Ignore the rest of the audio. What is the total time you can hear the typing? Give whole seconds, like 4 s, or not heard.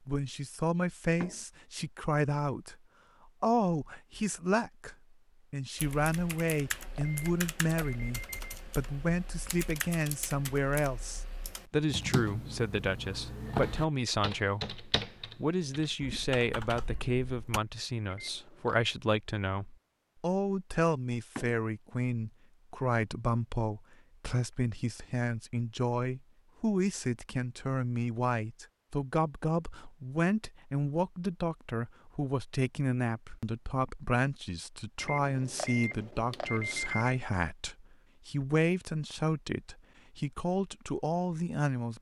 12 s.